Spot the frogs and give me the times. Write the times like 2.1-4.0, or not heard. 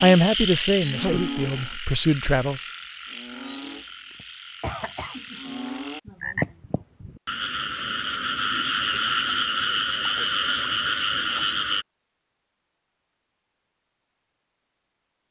0.0-11.8.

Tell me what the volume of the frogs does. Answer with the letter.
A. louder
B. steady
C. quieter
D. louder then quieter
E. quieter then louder
E.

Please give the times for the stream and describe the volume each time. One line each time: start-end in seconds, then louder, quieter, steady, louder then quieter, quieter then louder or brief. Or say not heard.
not heard.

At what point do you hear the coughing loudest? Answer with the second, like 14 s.
5 s.